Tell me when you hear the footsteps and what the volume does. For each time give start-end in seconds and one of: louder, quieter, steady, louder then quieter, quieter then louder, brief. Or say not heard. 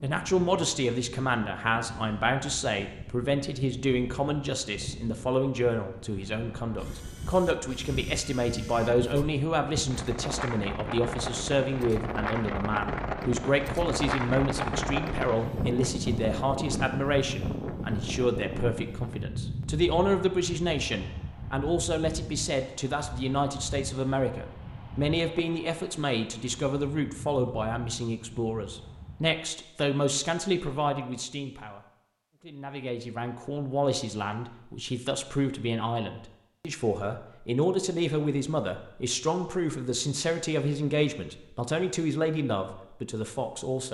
not heard.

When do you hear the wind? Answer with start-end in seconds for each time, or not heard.
0.2-29.4.